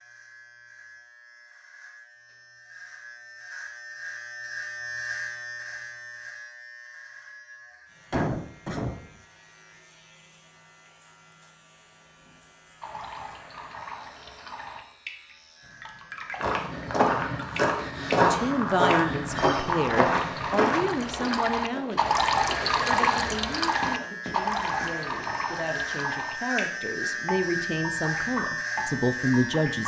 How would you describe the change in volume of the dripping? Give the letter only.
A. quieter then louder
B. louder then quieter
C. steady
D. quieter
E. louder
B.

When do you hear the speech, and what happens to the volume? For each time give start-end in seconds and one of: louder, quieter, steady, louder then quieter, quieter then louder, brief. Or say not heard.
18.3-29.8 quieter then louder.